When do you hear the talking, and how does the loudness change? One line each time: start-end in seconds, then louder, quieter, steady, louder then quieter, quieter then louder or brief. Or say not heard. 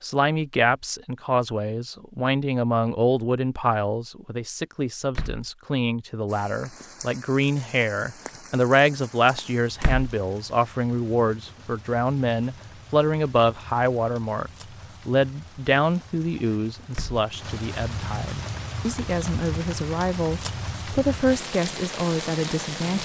0.0-23.0 steady.